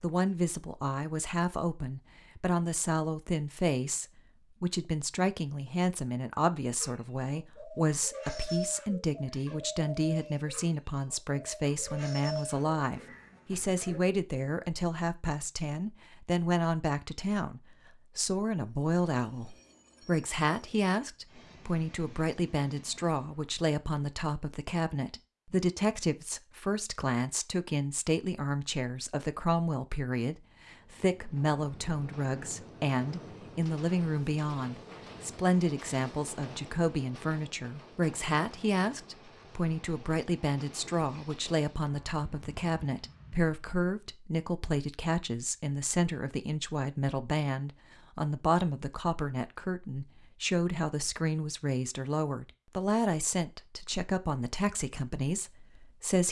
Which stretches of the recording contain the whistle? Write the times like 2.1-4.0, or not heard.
not heard.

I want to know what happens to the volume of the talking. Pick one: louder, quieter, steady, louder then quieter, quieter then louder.
steady.